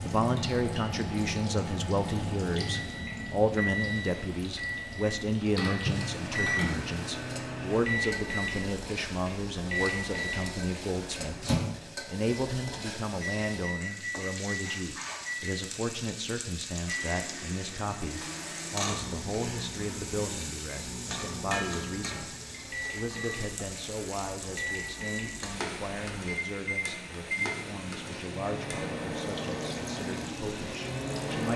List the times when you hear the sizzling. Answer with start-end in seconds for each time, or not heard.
0.0-31.5.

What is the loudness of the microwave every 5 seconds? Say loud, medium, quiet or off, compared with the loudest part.
loud, loud, loud, medium, medium, loud, loud.